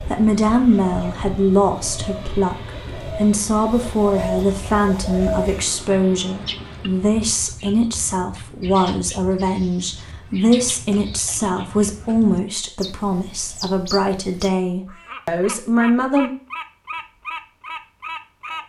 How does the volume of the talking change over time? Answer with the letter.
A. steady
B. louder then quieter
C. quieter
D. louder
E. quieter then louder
A.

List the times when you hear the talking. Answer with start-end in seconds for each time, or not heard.
0.0-16.3.